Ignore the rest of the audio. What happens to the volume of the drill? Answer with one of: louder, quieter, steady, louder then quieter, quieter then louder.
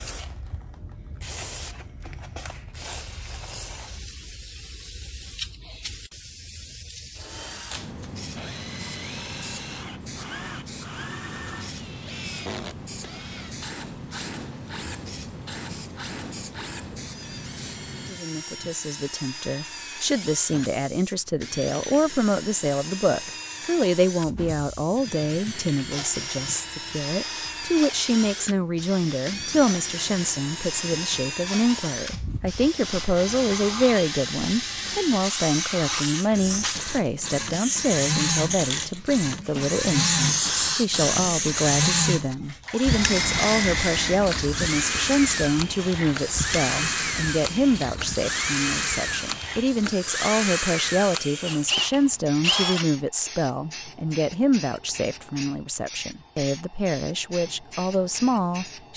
louder.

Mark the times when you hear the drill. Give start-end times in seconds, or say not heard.
7.2-52.9.